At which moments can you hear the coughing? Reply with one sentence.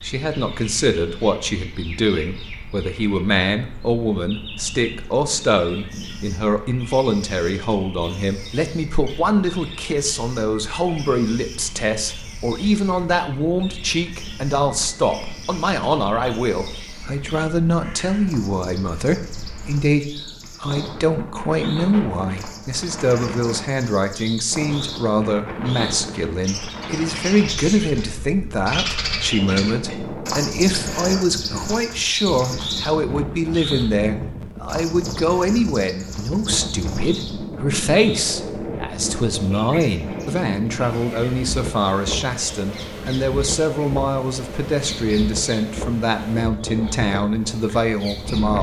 You can't hear the coughing here.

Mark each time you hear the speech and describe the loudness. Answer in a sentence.
You can hear the speech from 0.0 to 48.5 s, at a steady volume.